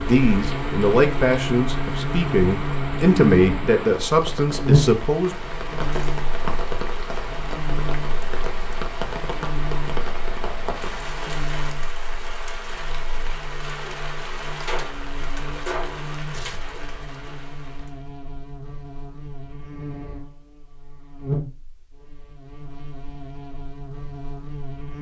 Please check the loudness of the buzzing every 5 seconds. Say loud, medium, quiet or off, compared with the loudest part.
loud, medium, quiet, quiet, medium.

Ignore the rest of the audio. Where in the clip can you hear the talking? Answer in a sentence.
You can hear the talking from 0.0 to 5.3 s.